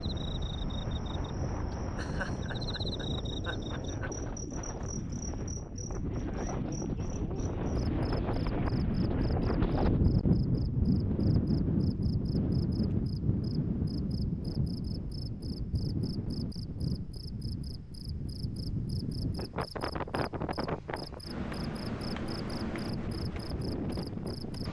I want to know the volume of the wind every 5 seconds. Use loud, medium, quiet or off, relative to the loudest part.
medium, loud, loud, medium, medium.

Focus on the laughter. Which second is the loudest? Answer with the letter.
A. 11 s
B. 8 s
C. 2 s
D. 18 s
C.